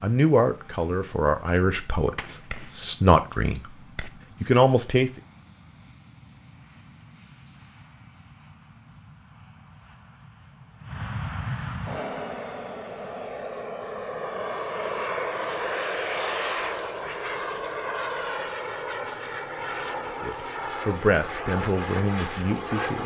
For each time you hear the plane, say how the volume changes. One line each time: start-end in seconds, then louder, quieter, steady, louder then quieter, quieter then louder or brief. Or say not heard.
0.0-23.0 louder.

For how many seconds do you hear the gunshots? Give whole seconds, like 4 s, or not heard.
2 s.